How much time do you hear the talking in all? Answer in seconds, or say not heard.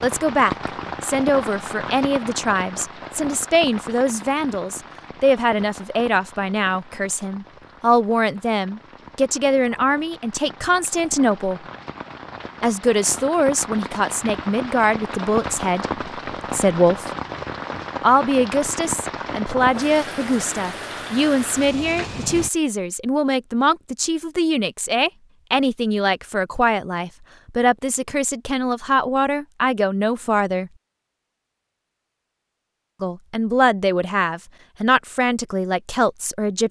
32 s.